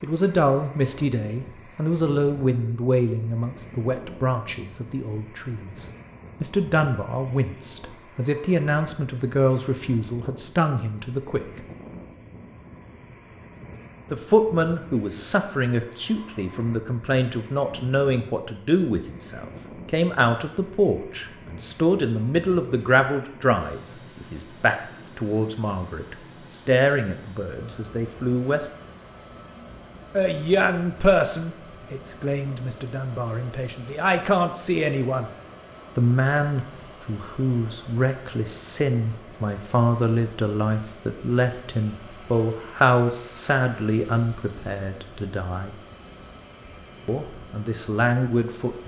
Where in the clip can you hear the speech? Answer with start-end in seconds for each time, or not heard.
0.0-11.4, 14.1-28.6, 30.1-35.3, 36.0-45.8, 47.0-48.8.